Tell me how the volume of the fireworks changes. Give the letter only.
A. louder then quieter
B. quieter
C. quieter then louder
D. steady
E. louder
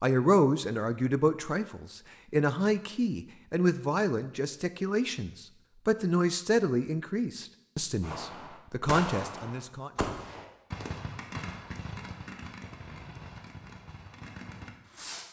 B.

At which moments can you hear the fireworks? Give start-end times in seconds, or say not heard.
8.0-15.2.